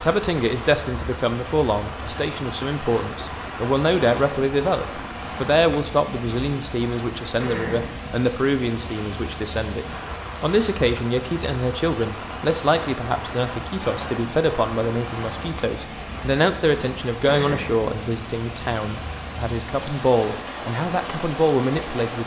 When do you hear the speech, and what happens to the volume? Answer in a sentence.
You can hear the speech from 0.0 to 22.2 s, at a steady volume.